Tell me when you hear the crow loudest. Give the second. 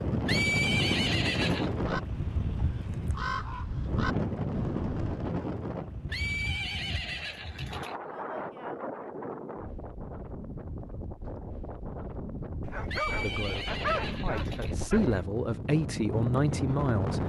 3 s.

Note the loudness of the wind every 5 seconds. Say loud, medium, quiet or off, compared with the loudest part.
loud, medium, medium, loud.